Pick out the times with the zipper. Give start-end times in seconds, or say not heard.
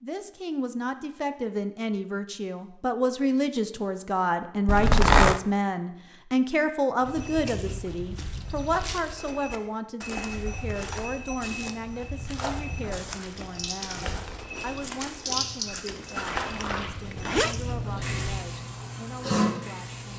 4.7-5.4, 15.8-17.6.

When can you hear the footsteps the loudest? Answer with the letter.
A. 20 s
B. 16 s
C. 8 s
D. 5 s
B.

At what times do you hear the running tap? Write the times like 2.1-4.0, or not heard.
13.3-16.1, 17.5-20.1.